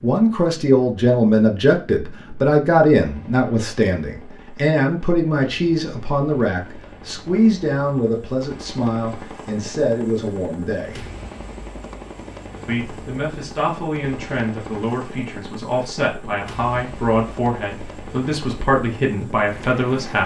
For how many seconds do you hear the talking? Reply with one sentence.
The talking can be heard for 19 seconds in total.